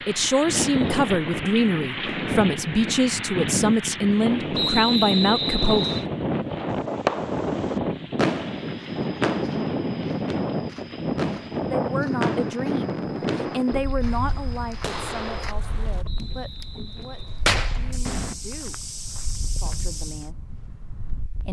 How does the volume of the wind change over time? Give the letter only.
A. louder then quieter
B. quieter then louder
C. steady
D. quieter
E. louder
D.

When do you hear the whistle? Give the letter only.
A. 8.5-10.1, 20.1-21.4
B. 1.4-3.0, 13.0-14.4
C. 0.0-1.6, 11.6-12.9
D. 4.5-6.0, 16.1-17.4
D.